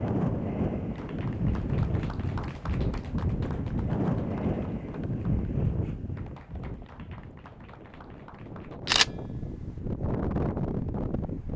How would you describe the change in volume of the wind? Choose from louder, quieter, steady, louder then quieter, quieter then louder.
quieter then louder.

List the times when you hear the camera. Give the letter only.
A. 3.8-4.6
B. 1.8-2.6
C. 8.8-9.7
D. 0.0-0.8
C.